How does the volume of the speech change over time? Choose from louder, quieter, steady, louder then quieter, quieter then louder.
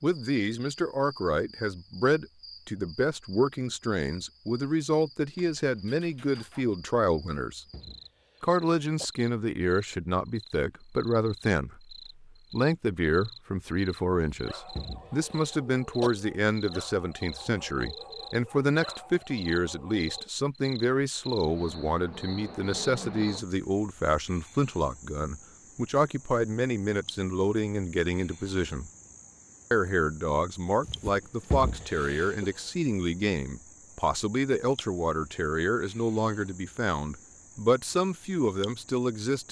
steady.